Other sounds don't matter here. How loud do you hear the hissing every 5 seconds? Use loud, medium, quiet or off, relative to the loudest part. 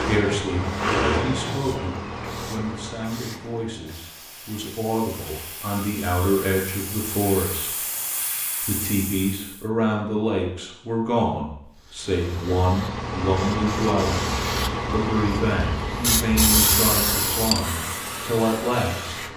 quiet, medium, medium, loud.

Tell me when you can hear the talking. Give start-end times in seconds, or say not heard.
0.0-7.7, 8.6-14.2, 14.9-19.2.